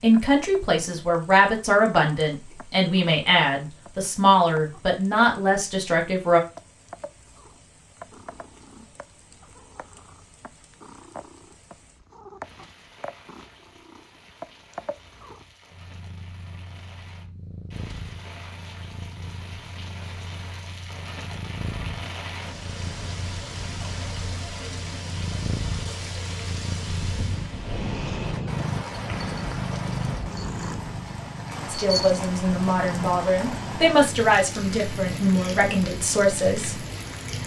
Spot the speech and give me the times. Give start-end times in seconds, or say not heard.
0.0-6.4, 31.6-36.9.